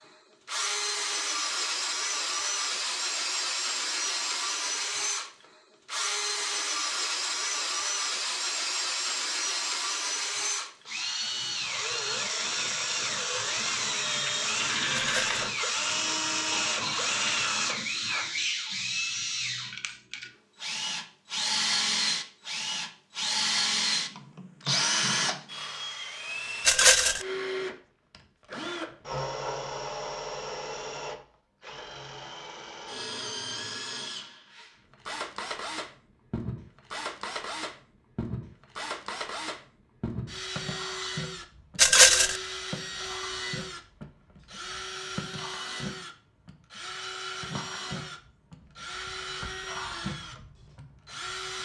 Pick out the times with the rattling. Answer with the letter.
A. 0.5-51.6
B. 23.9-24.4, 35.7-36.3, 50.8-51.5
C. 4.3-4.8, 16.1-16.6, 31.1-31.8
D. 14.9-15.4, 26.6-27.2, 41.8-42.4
D.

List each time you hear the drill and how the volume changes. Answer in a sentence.
You can hear the drill from 0.5 to 51.6 s, getting quieter.